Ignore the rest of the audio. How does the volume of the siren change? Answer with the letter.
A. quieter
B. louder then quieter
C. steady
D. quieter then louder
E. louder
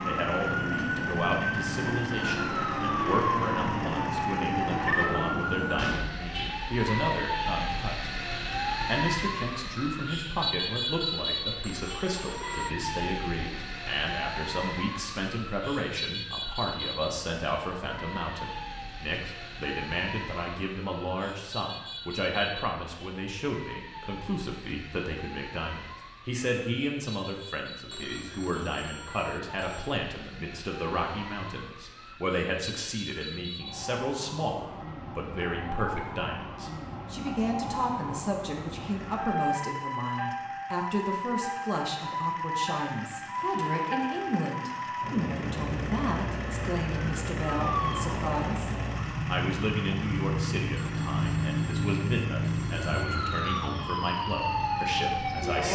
D.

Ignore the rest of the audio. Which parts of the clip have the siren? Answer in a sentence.
You can hear the siren from 0.0 to 55.6 s.